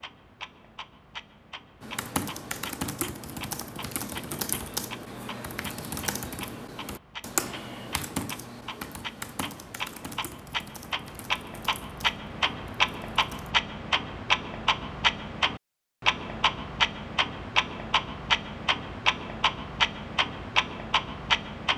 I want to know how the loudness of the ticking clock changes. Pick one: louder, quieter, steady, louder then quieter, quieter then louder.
louder.